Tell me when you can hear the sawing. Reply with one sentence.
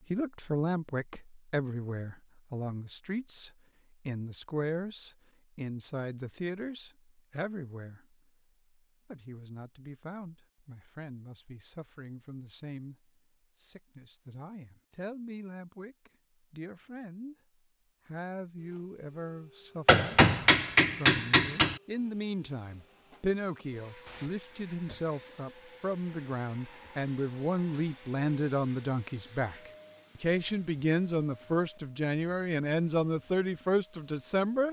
You can't hear the sawing here.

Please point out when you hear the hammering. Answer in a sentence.
You can hear the hammering from 19.9 to 21.8 s.